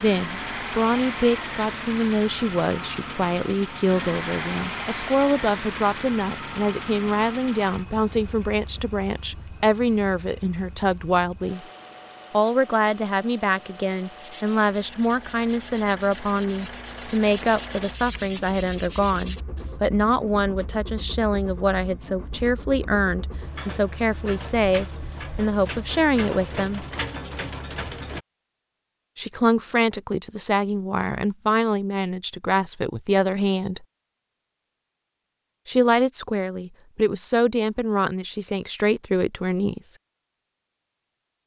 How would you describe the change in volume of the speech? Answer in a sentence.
The volume of the speech stays about the same.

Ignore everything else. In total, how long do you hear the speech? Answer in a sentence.
The speech can be heard for 35 seconds in total.